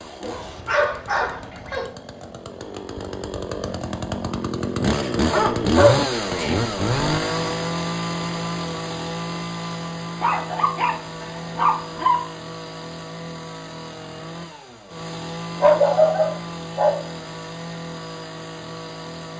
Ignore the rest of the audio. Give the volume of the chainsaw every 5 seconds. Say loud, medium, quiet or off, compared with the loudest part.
medium, loud, medium, medium.